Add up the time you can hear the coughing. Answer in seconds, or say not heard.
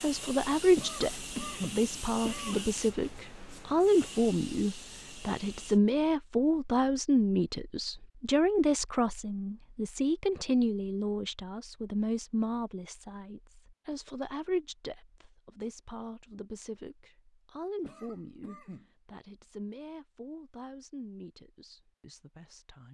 3 s.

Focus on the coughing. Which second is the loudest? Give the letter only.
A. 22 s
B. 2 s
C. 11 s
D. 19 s
B.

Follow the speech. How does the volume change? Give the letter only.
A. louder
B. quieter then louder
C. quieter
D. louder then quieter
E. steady
C.